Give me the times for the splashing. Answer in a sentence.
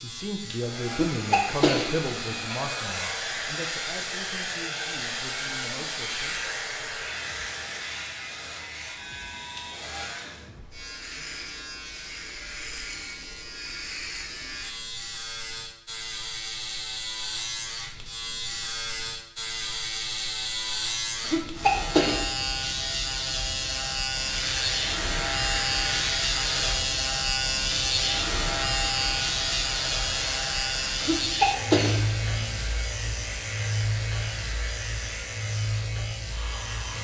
The splashing can't be heard in this clip.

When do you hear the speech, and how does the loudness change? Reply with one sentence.
You can hear the speech from 0.0 to 6.4 s, getting quieter.